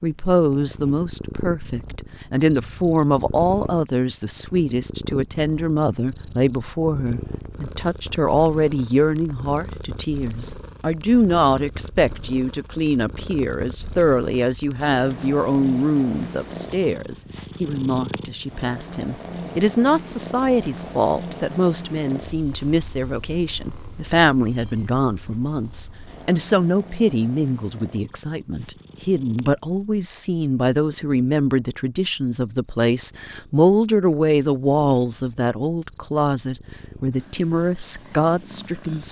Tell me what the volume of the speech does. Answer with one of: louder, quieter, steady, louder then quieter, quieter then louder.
steady.